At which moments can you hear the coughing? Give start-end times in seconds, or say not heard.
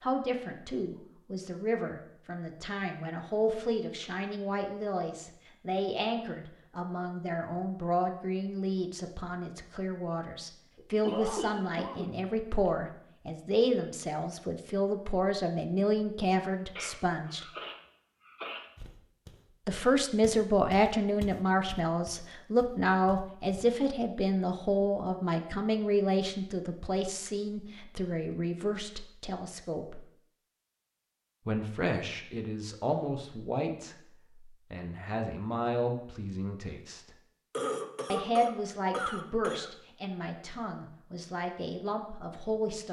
10.8-12.7, 16.8-18.7, 37.5-39.7.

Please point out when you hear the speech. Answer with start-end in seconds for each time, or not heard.
0.0-17.4, 19.6-30.0, 31.4-37.1, 38.0-42.8.